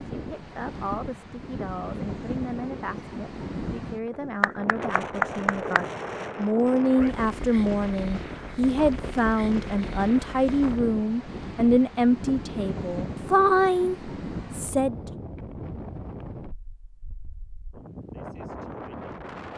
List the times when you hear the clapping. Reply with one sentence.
You can hear the clapping from 4.4 to 5.8 s.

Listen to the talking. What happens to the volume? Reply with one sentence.
The loudness of the talking goes up.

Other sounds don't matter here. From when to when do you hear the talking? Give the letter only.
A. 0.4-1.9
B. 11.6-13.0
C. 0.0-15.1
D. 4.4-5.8
C.